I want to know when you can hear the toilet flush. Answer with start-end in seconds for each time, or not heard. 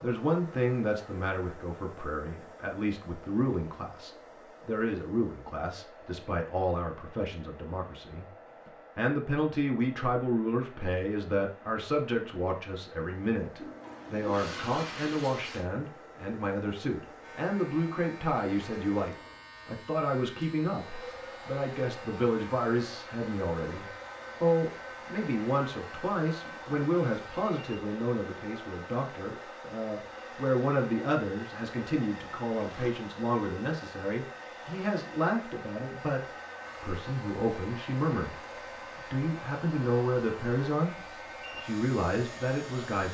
13.6-15.7, 32.5-33.0.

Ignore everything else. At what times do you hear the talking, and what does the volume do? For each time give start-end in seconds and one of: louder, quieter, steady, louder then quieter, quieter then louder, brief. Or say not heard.
0.0-38.4 steady
39.1-41.0 brief
41.6-43.0 brief.